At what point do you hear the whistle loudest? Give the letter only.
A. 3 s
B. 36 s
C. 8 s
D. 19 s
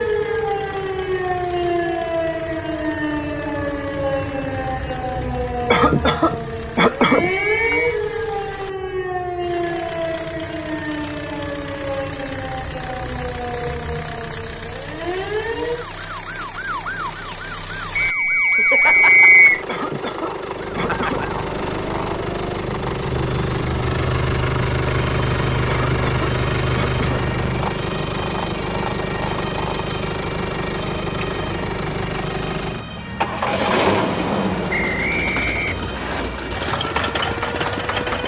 D.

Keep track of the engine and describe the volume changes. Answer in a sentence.
The loudness of the engine goes up.